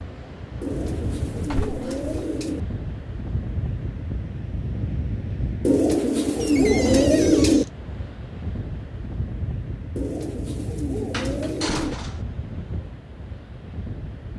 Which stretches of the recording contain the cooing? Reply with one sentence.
The cooing can be heard from 0.6 to 2.6 s, from 5.7 to 7.7 s and from 9.9 to 11.9 s.